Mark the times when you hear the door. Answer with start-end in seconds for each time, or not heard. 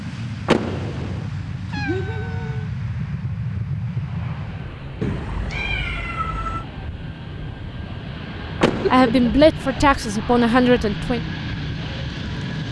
0.5-1.2, 8.6-9.4.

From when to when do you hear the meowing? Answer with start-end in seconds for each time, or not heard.
1.3-2.7, 5.0-6.7, 8.7-9.8.